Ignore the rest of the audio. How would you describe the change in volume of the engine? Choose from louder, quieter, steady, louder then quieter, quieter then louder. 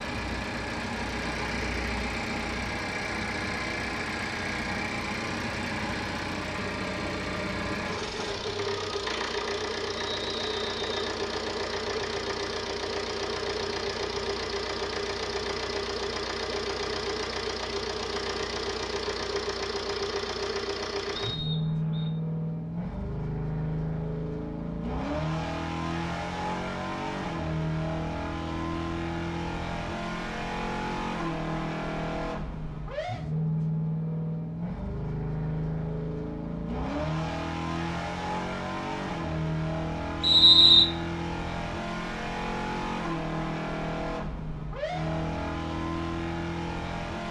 steady.